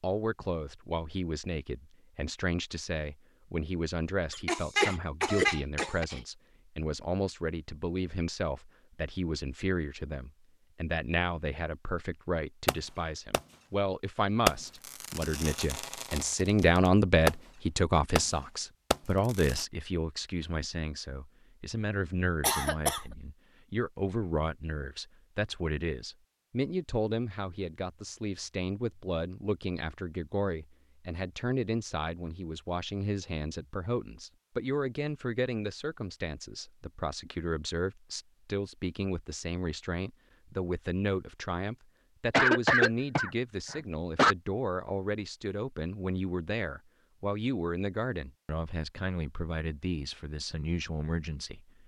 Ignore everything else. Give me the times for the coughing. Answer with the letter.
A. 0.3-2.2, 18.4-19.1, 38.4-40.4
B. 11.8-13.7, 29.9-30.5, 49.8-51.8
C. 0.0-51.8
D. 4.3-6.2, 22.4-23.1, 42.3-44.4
D.